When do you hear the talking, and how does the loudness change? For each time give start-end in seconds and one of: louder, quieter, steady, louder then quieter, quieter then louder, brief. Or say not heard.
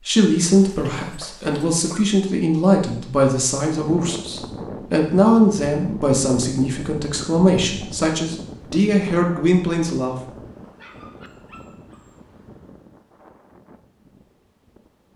0.1-10.2 steady.